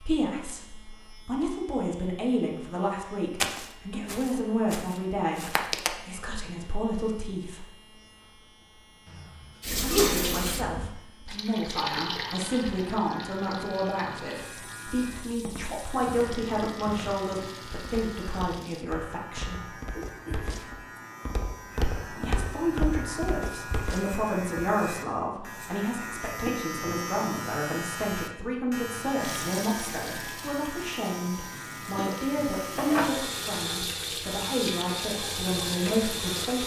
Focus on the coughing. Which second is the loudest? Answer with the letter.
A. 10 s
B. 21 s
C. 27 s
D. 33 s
A.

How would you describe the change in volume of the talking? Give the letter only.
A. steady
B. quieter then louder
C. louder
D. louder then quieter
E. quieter
A.